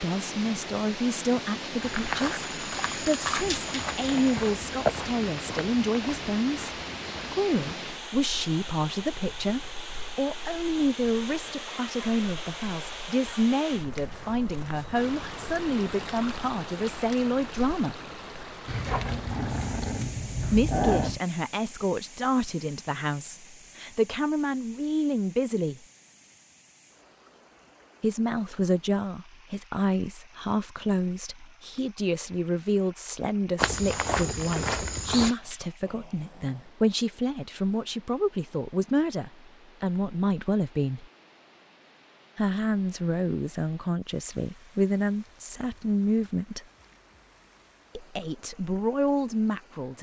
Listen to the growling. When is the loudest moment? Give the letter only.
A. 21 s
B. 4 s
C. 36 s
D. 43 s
A.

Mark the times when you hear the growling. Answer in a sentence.
You can hear the growling from 3.4 to 4.5 s, from 18.6 to 21.2 s and from 35.2 to 36.6 s.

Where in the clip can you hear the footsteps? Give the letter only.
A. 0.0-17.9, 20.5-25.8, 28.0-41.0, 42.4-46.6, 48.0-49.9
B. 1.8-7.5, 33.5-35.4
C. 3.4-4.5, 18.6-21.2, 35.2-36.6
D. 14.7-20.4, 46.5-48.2
B.